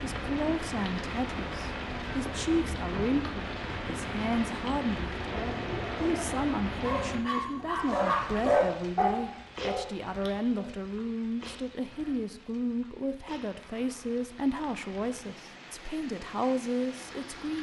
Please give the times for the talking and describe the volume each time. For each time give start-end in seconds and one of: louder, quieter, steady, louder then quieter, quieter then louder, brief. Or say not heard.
0.0-17.5 steady.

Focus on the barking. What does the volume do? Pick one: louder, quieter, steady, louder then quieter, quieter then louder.
louder then quieter.